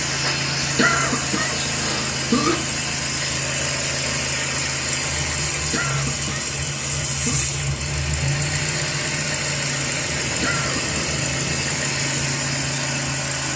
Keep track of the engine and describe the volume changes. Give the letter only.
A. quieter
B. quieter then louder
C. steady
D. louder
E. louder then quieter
C.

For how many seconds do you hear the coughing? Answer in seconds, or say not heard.
4 s.